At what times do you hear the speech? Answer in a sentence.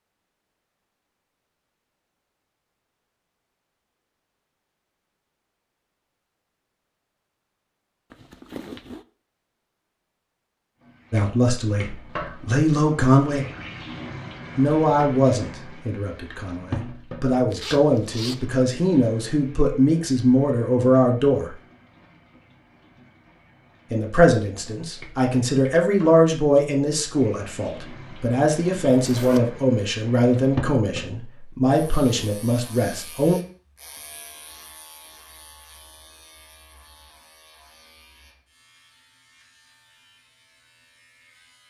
You can hear the speech from 11.1 to 13.4 s, from 14.6 to 21.5 s and from 23.9 to 33.4 s.